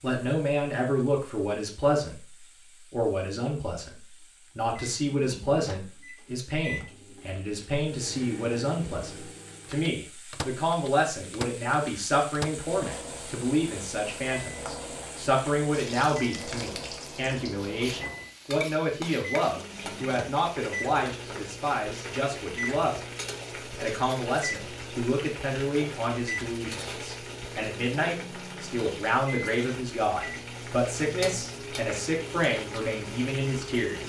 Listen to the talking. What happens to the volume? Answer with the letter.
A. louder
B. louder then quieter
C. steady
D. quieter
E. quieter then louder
C.